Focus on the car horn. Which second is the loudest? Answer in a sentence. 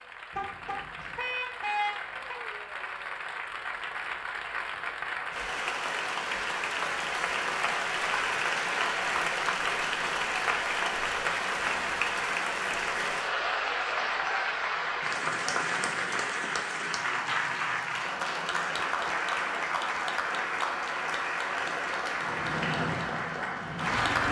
The loudest moment of the car horn is at 2 seconds.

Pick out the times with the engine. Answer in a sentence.
The engine can be heard from 22.1 to 24.2 s.